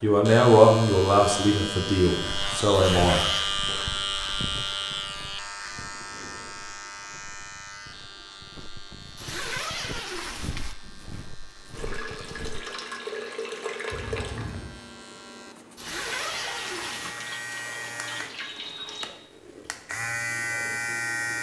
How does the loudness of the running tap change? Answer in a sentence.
The loudness of the running tap goes down, then up.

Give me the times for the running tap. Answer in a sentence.
You can hear the running tap from 11.7 to 19.1 s.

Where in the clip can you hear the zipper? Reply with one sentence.
The zipper can be heard from 2.8 to 3.6 s, from 9.2 to 10.8 s and from 15.8 to 17.1 s.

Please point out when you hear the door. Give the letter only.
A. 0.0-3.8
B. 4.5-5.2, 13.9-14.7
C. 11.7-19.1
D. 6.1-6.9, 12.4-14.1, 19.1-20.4
B.